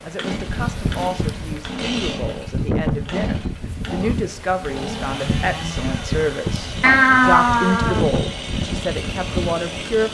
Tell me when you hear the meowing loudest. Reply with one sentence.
The loudest moment of the meowing is at 7 seconds.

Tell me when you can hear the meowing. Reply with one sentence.
You can hear the meowing from 0.5 to 1.6 s and from 6.8 to 8.0 s.